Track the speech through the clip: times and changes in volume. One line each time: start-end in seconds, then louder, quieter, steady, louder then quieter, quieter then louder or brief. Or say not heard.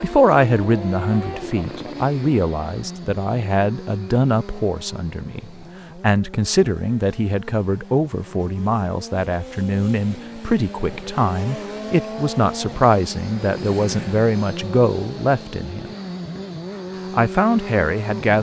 0.0-15.9 steady
17.1-18.3 brief.